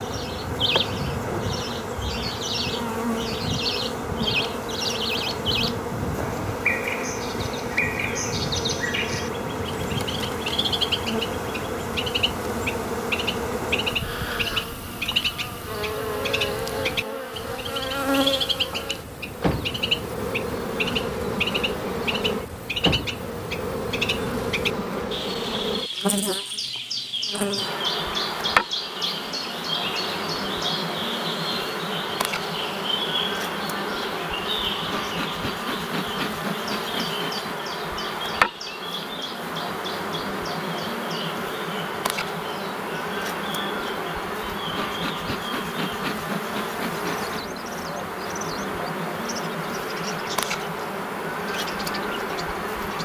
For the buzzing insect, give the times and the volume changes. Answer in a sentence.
You can hear the buzzing insect from 0.0 to 52.9 s, at a steady volume.